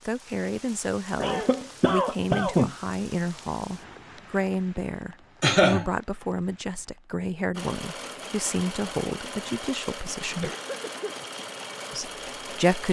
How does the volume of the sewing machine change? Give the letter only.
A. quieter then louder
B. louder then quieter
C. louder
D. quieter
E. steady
E.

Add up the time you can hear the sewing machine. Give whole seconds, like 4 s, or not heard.
5 s.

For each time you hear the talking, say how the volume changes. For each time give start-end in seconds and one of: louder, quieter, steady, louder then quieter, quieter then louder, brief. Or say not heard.
0.1-10.5 steady
11.9-12.8 brief.